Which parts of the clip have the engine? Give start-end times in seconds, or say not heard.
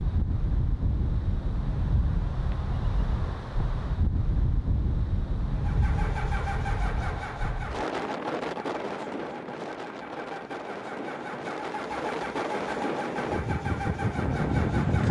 5.5-15.0.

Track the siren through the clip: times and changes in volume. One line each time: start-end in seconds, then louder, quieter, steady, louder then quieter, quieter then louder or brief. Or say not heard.
not heard.